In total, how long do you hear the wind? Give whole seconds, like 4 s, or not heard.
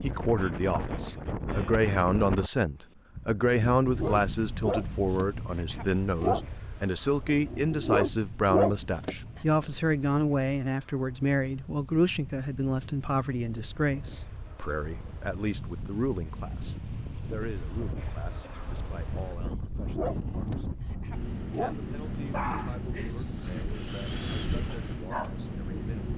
26 s.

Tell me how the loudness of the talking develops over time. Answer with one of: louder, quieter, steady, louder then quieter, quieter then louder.
quieter.